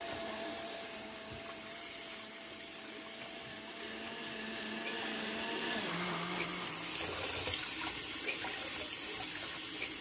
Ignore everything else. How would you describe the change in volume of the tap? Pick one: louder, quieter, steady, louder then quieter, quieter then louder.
louder.